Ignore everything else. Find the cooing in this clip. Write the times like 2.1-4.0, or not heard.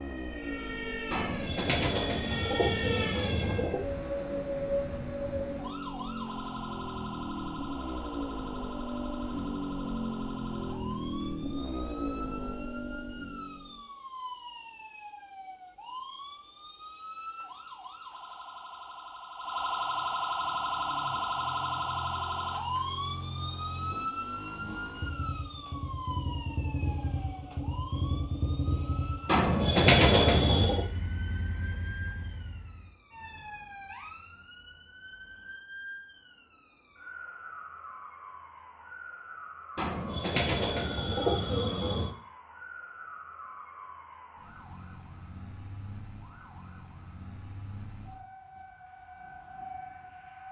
1.1-3.9, 29.2-30.9, 39.8-42.1.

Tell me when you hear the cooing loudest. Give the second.
30 s.